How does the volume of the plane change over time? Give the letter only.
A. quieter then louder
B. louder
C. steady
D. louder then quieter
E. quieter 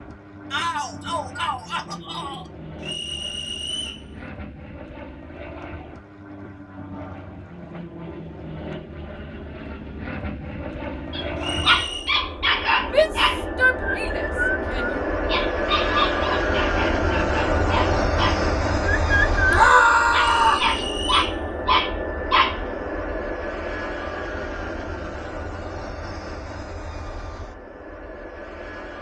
D.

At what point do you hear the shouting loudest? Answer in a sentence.
The volume of the shouting peaks at 20 seconds.